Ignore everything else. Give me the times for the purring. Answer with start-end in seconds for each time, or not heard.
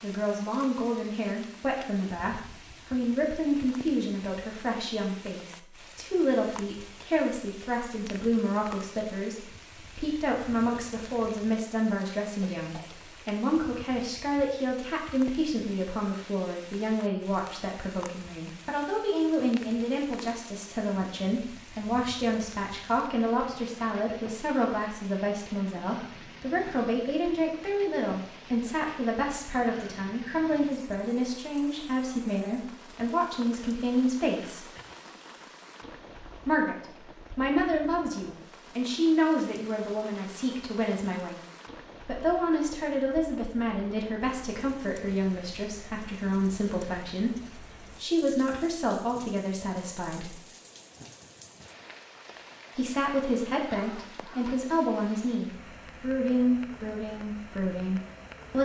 not heard.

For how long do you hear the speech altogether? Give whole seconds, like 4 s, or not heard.
54 s.